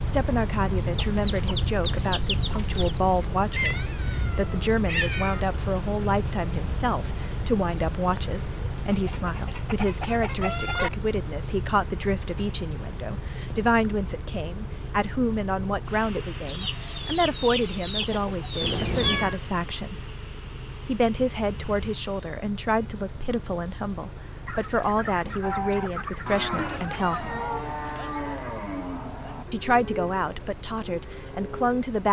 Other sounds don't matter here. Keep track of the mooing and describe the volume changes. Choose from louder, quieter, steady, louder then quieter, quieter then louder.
quieter.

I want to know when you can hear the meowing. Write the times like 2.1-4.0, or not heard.
3.5-5.5, 18.6-19.4, 26.9-28.4.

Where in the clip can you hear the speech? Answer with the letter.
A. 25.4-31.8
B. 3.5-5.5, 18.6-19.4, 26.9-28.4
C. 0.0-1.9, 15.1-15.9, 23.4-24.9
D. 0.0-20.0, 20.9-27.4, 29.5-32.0
D.